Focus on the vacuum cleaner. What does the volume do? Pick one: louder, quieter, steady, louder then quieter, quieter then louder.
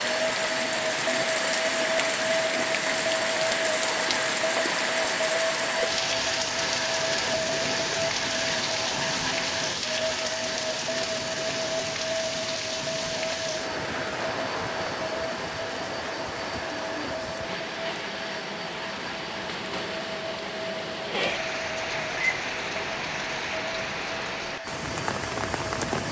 quieter.